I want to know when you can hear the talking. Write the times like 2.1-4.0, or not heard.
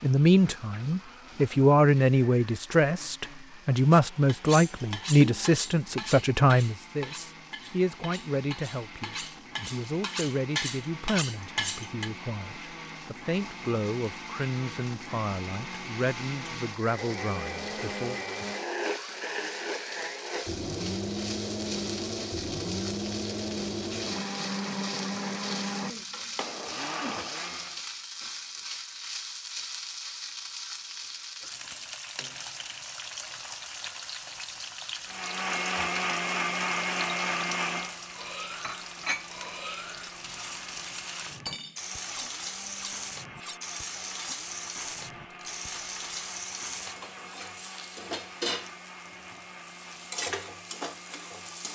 0.0-18.2.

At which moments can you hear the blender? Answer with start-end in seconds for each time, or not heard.
0.0-27.8, 35.0-51.7.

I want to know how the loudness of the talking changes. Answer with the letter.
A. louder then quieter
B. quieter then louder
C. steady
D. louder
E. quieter
E.